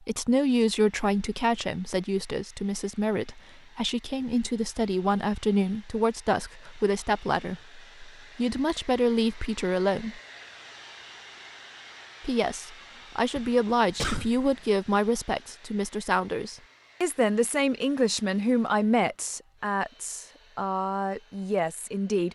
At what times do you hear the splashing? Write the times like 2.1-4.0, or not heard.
not heard.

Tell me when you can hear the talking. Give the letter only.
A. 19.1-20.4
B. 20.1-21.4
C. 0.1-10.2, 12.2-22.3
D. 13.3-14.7
C.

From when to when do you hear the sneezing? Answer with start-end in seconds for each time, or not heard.
13.3-14.7.